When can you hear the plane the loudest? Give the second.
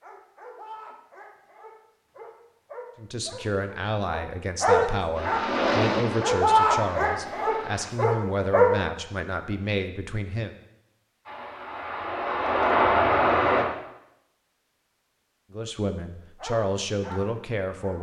13 s.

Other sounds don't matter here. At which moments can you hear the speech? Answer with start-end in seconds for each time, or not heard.
3.0-10.6, 15.5-17.9.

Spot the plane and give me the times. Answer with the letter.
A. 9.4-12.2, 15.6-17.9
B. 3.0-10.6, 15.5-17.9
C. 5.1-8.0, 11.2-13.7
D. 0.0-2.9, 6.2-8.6
C.